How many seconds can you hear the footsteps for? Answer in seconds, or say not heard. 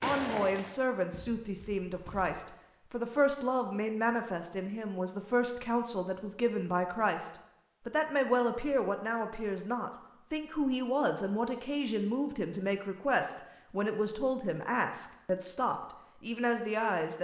2 s.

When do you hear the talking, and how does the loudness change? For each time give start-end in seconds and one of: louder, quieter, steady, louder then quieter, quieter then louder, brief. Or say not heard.
0.0-17.1 steady.